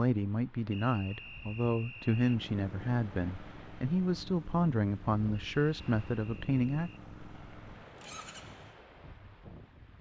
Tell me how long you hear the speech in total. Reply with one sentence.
You can hear the speech for 7 seconds altogether.